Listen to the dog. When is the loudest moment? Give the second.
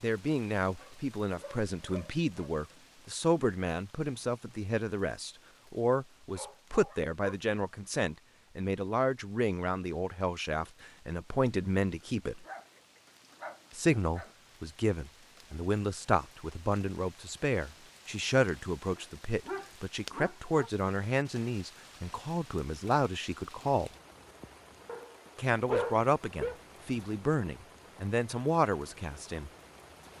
26 s.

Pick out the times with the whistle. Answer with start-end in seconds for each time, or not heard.
not heard.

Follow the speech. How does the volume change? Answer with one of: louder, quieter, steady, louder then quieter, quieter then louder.
steady.